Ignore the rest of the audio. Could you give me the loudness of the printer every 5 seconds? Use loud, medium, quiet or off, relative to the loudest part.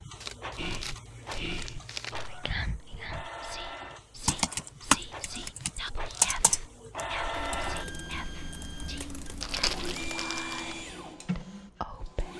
medium, loud, loud.